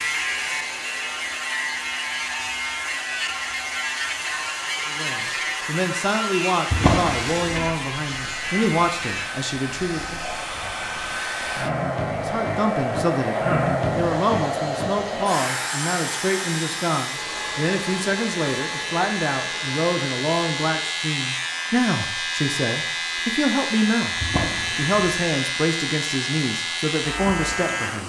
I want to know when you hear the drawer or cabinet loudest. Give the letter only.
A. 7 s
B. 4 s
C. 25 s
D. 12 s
A.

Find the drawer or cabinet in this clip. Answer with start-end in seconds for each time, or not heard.
6.7-7.7, 24.2-25.0.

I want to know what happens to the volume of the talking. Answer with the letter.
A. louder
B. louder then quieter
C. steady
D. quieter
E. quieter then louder
C.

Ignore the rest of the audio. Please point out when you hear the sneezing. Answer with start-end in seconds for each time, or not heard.
not heard.